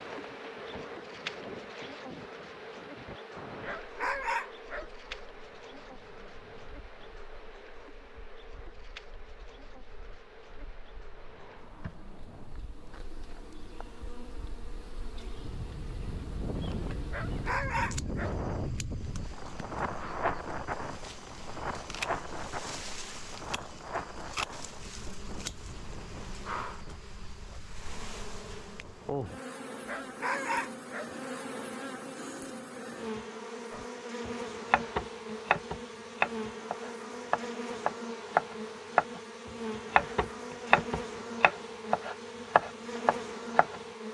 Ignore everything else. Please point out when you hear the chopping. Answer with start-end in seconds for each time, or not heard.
33.7-43.8.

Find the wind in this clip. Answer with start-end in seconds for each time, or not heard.
0.0-29.4.